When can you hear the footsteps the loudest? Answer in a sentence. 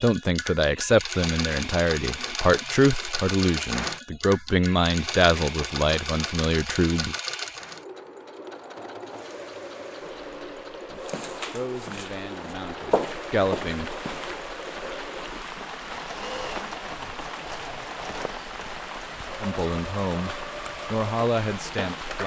The loudest moment of the footsteps is at 13 seconds.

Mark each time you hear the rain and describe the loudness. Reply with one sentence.
The rain can be heard from 9.1 to 22.2 s, getting louder.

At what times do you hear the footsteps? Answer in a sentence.
The footsteps can be heard from 10.9 to 14.4 s.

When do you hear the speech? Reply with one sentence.
The speech can be heard from 0.0 to 7.2 s, from 10.9 to 13.9 s and from 19.4 to 22.2 s.